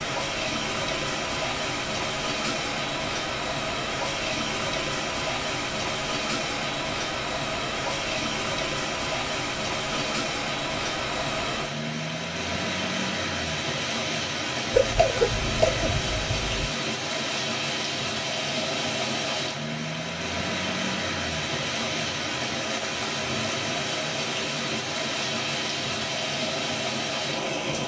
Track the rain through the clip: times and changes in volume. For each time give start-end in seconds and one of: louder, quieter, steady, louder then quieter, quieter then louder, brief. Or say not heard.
0.0-27.8 steady.